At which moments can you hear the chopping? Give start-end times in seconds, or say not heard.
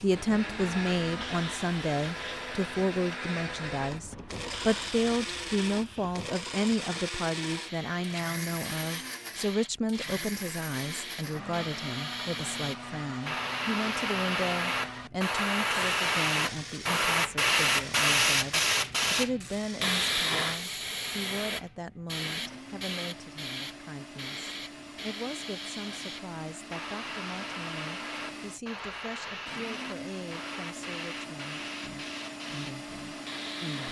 not heard.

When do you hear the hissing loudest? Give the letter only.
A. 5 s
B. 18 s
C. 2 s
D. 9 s
B.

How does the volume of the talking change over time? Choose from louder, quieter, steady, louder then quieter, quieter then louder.
quieter.